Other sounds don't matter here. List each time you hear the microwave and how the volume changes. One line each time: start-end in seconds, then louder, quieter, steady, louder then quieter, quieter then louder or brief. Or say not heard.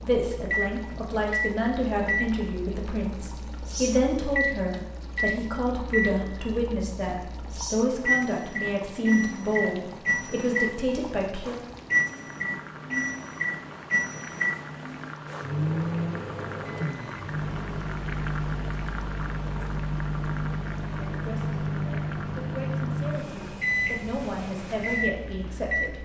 0.0-25.9 steady.